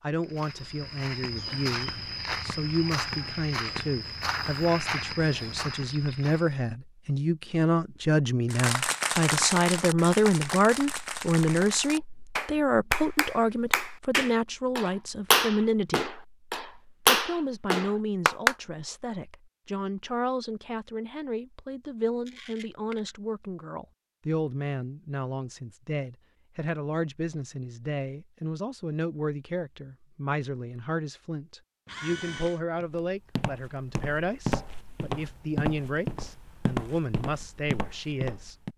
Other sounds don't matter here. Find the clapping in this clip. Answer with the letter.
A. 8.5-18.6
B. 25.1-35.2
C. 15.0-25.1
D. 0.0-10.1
A.